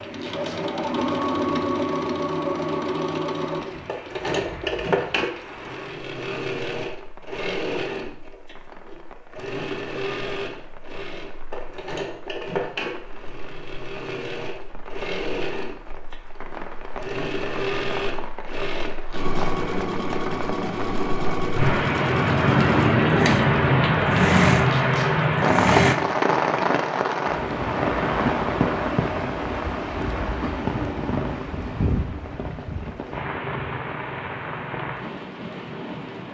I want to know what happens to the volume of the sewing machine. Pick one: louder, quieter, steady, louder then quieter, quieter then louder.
quieter then louder.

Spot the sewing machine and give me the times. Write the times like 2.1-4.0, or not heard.
0.0-25.9.